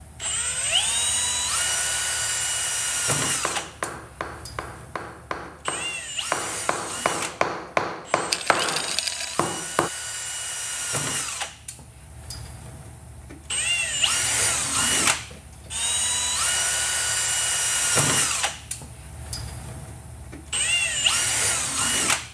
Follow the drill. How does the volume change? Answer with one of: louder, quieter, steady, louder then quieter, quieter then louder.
quieter then louder.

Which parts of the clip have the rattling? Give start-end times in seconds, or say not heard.
8.3-9.3.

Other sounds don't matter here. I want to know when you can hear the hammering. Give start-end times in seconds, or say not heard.
3.2-9.9.